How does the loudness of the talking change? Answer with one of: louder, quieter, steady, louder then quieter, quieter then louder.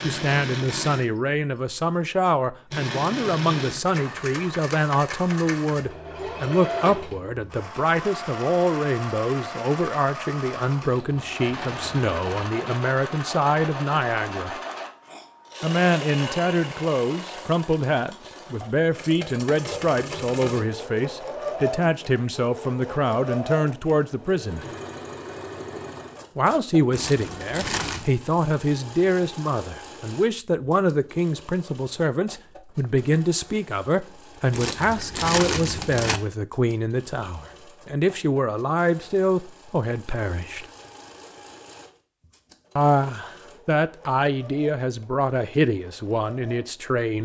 steady.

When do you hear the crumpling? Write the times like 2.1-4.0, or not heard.
10.8-12.4, 26.9-28.1, 34.5-36.2.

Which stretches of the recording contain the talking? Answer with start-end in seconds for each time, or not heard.
0.0-14.6, 15.6-24.6, 26.4-40.6, 42.8-47.2.